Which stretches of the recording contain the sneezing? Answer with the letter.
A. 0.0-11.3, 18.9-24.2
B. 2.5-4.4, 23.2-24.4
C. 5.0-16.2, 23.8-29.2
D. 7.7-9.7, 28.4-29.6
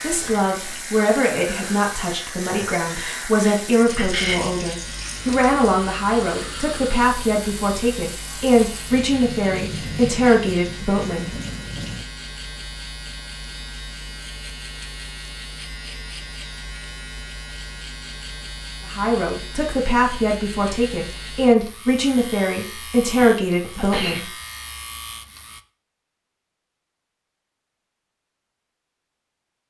B.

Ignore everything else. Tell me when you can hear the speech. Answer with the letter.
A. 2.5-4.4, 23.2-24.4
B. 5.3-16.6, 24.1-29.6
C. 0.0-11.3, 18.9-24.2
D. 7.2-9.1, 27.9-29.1
C.